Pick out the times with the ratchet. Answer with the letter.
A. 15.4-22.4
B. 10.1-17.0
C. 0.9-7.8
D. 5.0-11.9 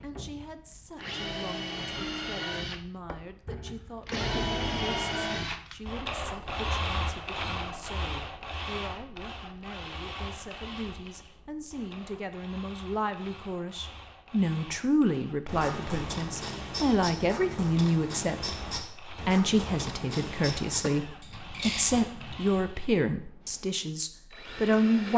A.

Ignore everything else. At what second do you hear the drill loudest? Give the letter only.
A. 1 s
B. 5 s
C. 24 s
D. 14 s
B.